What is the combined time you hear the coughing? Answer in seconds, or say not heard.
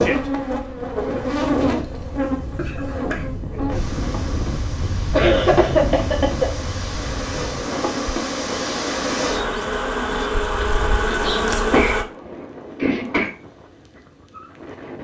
4 s.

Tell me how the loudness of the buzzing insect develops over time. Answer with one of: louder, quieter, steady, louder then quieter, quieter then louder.
quieter then louder.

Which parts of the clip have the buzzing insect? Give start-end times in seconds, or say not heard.
0.0-12.1.